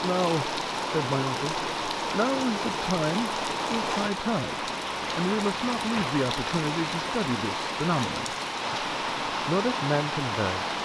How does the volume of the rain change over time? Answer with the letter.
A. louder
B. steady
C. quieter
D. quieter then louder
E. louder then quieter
B.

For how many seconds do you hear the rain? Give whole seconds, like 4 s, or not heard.
11 s.